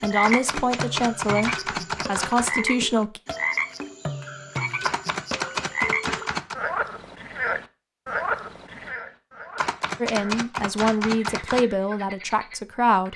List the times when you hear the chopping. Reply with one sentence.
You can hear the chopping from 0.2 to 2.5 s, from 4.8 to 6.5 s and from 9.6 to 11.7 s.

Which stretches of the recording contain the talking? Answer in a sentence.
You can hear the talking from 0.0 to 3.2 s and from 10.0 to 13.1 s.